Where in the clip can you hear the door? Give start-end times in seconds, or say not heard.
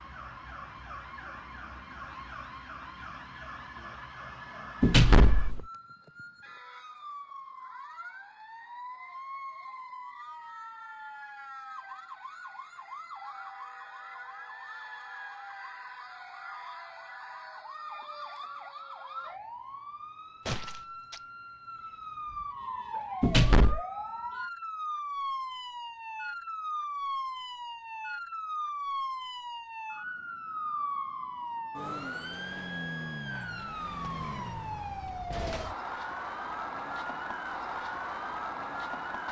4.8-5.7, 23.2-23.8.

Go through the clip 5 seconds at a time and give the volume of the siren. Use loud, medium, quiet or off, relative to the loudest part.
medium, medium, medium, medium, loud, loud, loud, loud.